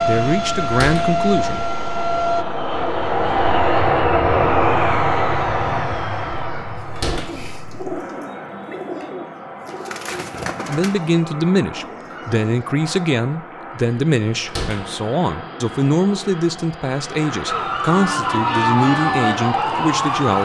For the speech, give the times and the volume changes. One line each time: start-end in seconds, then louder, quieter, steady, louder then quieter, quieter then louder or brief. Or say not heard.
0.1-1.6 brief
10.7-20.3 steady.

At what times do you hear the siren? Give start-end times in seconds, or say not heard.
0.0-2.5, 17.4-20.3.